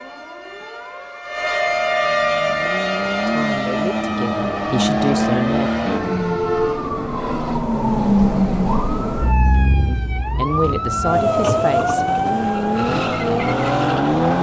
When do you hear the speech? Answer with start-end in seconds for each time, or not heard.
3.2-5.7, 9.8-12.1.